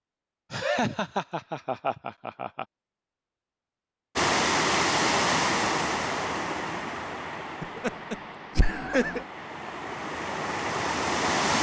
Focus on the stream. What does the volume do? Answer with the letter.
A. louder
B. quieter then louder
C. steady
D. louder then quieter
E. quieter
B.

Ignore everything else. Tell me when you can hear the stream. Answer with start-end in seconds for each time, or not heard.
4.2-11.5.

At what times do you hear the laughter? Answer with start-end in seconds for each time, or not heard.
0.5-2.6, 7.6-9.2.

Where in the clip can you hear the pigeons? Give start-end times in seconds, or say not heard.
not heard.